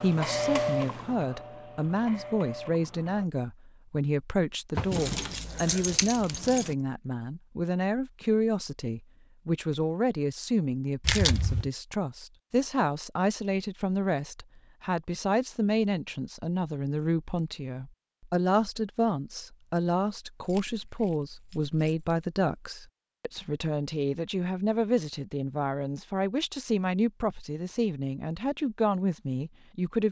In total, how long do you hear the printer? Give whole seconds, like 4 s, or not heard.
3 s.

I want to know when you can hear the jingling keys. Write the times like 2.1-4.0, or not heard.
4.8-6.8, 11.0-11.7, 20.4-22.2.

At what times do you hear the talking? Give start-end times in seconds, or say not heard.
0.0-30.0.